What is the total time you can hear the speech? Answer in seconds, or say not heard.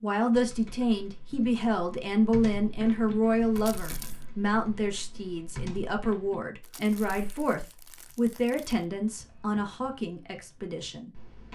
11 s.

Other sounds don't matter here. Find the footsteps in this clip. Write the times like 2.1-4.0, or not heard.
not heard.